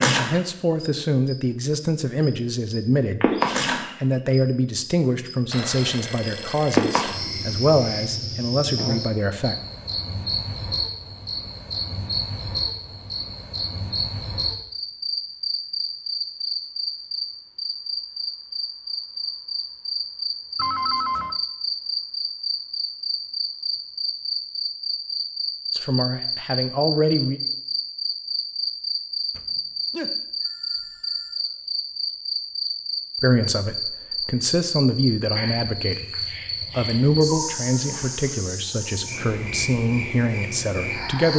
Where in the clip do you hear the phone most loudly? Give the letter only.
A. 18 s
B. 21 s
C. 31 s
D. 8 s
B.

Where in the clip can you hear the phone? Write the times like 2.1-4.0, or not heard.
5.5-8.1, 20.6-21.4, 29.4-31.4.